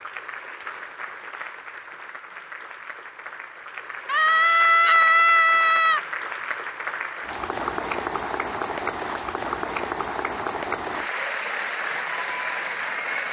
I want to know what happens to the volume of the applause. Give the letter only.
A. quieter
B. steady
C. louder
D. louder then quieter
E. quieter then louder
C.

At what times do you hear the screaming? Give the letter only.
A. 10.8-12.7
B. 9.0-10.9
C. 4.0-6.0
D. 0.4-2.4
C.